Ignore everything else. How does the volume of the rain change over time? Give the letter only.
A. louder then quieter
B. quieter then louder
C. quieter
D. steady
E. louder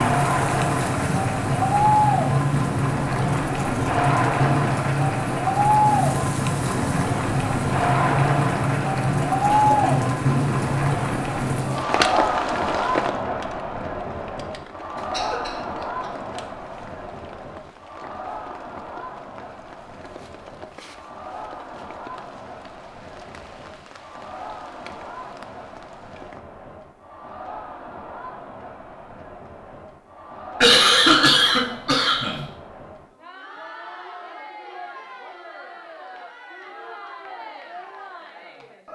C.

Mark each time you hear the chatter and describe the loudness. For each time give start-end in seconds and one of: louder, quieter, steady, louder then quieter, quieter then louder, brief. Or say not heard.
0.0-38.9 quieter.